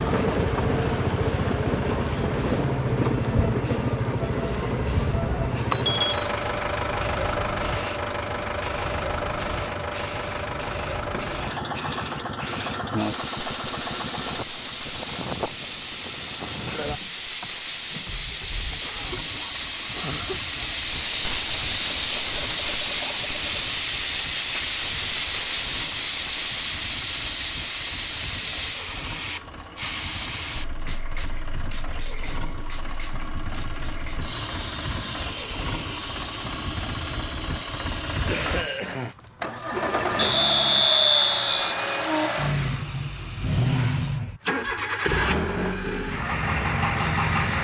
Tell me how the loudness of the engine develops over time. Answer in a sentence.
The volume of the engine goes down, then up.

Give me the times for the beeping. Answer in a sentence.
The beeping can be heard from 5.7 to 6.2 s, from 21.9 to 23.6 s and from 40.1 to 41.8 s.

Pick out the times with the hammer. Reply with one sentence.
The hammer can't be heard in this clip.